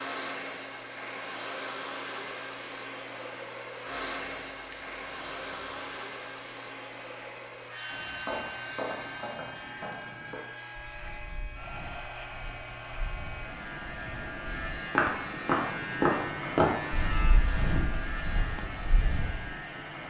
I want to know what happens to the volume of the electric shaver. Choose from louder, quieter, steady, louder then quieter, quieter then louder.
louder.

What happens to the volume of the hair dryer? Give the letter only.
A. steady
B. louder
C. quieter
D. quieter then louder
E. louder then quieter
C.